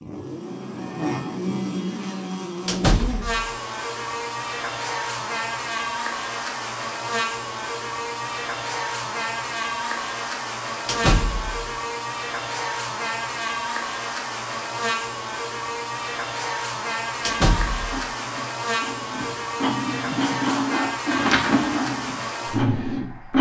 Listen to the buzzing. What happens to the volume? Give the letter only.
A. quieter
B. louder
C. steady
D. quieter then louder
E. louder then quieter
C.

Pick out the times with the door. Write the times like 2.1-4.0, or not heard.
2.6-3.5, 10.8-11.7, 17.2-18.1.